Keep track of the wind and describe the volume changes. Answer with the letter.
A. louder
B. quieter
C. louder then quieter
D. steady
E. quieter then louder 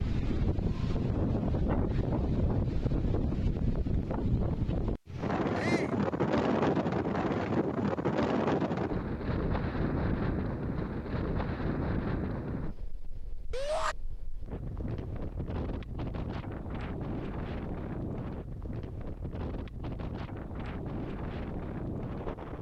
B.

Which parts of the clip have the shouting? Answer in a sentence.
You can hear the shouting from 5.5 to 6.0 s and from 13.5 to 13.9 s.